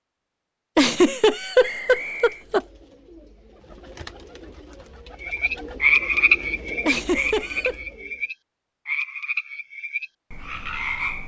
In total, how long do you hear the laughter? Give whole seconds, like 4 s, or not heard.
3 s.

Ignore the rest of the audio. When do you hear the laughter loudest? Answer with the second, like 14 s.
1 s.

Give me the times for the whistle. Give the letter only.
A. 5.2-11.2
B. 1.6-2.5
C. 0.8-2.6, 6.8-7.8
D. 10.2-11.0
B.